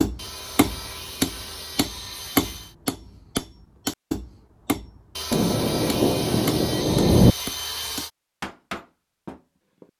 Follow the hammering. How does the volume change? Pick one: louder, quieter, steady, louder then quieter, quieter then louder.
quieter.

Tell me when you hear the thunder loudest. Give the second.
7 s.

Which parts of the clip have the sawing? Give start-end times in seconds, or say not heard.
0.1-2.8, 5.2-8.1.